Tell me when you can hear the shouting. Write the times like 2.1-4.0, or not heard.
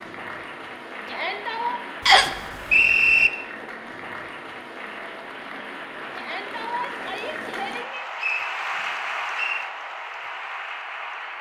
1.1-1.8, 6.2-8.1.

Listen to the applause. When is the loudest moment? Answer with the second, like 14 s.
9 s.